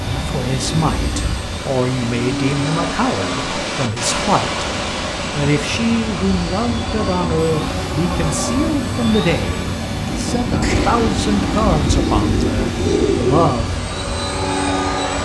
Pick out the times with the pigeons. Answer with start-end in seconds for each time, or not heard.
10.6-13.6.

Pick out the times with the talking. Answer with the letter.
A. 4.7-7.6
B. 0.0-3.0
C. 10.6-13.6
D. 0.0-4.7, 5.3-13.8
D.